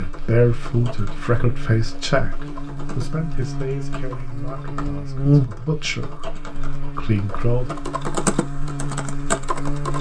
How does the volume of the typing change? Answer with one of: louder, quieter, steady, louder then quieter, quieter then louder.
louder.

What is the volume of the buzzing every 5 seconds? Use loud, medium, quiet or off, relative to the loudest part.
medium, loud.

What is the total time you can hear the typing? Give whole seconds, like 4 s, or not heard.
10 s.